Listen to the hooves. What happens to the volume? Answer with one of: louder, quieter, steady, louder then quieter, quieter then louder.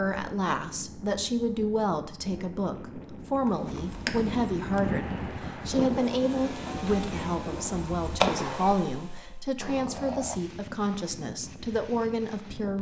quieter then louder.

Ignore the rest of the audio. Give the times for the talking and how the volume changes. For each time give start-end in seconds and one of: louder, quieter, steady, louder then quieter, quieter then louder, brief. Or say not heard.
0.0-12.7 steady.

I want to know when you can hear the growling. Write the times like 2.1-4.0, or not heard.
9.6-10.5.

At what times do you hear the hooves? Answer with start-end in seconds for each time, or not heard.
3.5-8.9.